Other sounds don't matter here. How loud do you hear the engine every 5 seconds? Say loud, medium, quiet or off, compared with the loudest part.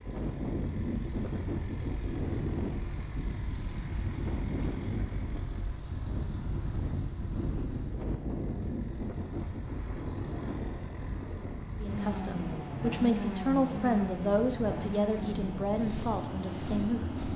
medium, medium, loud, loud.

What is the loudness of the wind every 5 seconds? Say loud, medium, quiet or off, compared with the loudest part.
loud, loud, medium, loud.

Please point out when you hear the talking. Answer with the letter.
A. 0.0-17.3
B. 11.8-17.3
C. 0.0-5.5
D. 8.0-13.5
B.